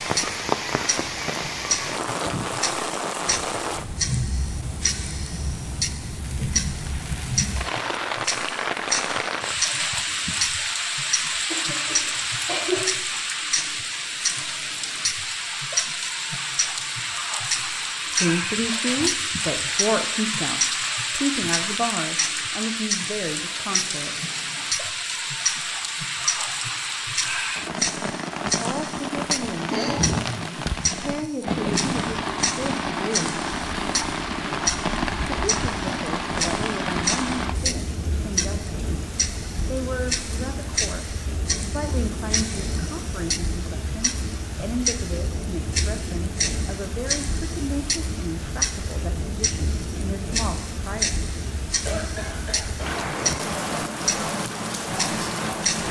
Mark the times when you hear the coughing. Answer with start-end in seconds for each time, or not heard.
11.5-12.8, 29.7-30.2, 51.9-53.0.